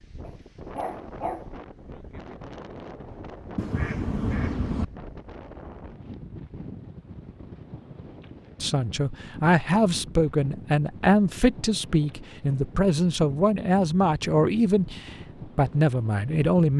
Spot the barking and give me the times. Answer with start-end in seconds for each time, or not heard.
0.2-1.5.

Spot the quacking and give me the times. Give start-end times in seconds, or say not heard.
3.5-4.8.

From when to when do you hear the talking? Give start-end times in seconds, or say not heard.
8.6-16.7.